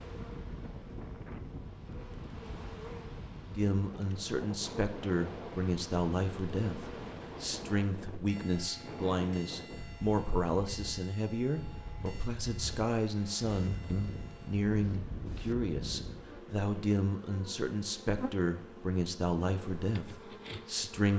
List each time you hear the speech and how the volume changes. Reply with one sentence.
You can hear the speech from 3.5 to 21.1 s, at a steady volume.